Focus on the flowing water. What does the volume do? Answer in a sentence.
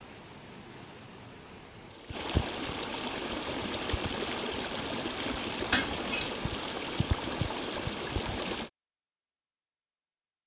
The loudness of the flowing water goes up.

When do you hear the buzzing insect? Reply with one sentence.
The buzzing insect can't be heard in this clip.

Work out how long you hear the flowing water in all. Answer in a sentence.
The flowing water can be heard for 9 seconds in total.